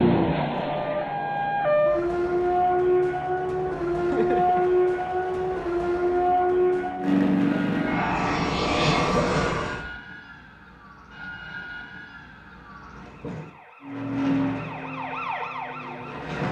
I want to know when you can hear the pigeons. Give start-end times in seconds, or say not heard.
not heard.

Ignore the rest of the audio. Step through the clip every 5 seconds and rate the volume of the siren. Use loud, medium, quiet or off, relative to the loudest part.
loud, loud, quiet, medium.